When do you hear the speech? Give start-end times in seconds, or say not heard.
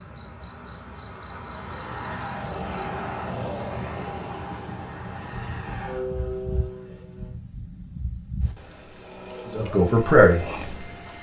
9.4-10.4.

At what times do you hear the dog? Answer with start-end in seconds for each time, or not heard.
not heard.